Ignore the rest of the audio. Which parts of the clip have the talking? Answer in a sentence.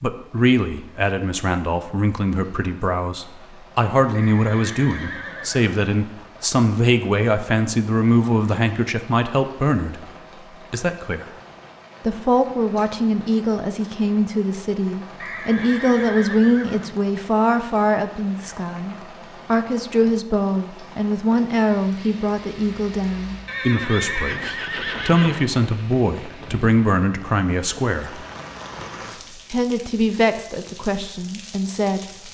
The talking can be heard from 0.0 to 10.1 s, from 10.7 to 11.2 s, from 12.0 to 28.2 s and from 29.5 to 32.2 s.